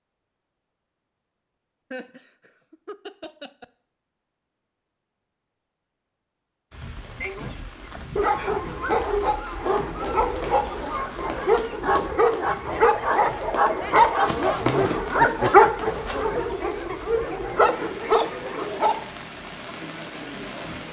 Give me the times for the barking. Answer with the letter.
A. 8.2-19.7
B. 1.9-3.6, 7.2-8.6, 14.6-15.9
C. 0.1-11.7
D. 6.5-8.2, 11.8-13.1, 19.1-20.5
A.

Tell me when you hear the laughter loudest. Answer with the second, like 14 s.
15 s.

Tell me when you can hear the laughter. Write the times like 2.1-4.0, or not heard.
1.9-3.6, 7.2-8.6, 14.6-15.9.